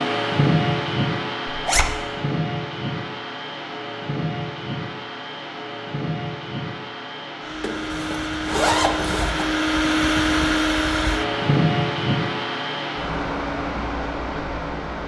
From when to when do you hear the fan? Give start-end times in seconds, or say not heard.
0.0-15.0.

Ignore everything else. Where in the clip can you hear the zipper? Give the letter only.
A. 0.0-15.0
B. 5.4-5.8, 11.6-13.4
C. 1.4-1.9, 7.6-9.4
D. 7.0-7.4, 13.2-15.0
C.